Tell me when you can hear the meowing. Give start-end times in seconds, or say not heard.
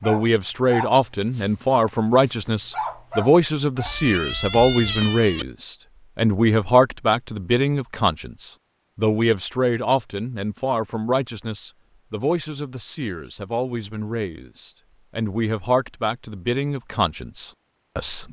3.9-5.5.